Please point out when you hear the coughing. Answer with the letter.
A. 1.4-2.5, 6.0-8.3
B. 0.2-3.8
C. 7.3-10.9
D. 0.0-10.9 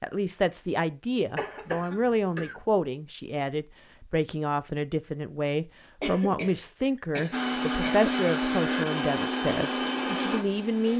A.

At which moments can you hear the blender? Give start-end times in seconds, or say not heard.
7.3-10.9.